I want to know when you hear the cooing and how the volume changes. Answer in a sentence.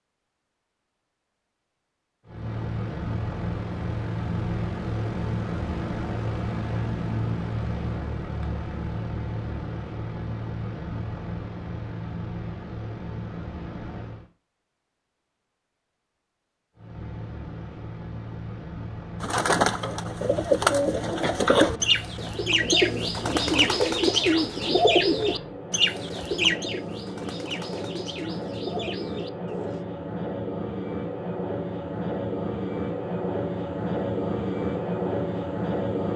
You can hear the cooing from 19.2 to 29.8 s, getting quieter.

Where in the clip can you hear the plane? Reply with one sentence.
You can hear the plane from 2.2 to 14.2 s and from 16.8 to 36.1 s.